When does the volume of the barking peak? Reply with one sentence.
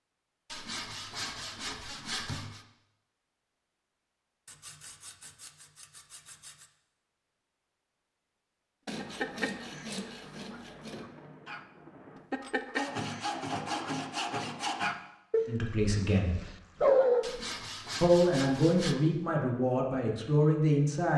The volume of the barking peaks at 17 seconds.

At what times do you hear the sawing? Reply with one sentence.
The sawing can be heard from 0.5 to 2.6 s, from 4.5 to 6.7 s, from 8.8 to 11.1 s, from 12.7 to 14.9 s and from 17.2 to 18.9 s.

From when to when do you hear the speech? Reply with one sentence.
You can hear the speech from 15.4 to 16.4 s and from 18.0 to 21.1 s.